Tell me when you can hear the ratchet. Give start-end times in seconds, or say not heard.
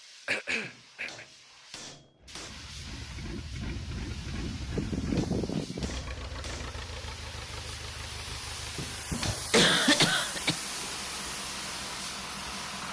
not heard.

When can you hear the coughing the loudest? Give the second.
10 s.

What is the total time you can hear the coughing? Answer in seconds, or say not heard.
4 s.